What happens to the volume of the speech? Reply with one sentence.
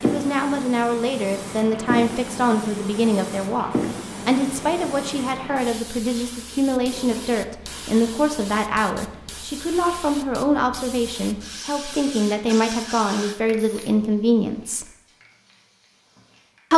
The loudness of the speech stays about the same.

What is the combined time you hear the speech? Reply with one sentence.
The speech can be heard for 15 seconds in total.